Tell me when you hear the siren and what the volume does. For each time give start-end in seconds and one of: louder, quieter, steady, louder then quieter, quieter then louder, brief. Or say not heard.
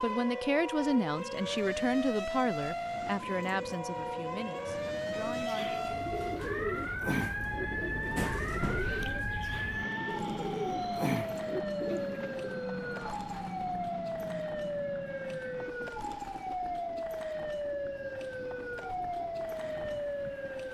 0.0-20.6 steady.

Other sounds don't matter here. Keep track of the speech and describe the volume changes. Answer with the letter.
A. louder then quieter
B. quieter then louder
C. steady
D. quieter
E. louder
D.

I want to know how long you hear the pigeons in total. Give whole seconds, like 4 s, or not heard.
7 s.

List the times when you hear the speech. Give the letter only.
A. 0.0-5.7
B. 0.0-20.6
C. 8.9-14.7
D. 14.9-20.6
A.